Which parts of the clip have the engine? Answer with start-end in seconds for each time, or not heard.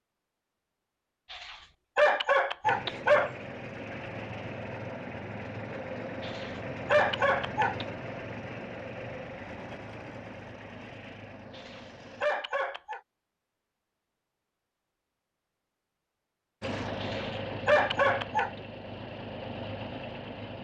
2.6-12.3, 16.6-20.5.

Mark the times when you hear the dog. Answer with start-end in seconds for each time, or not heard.
1.3-3.3, 6.2-7.8, 11.6-13.0, 17.0-18.5.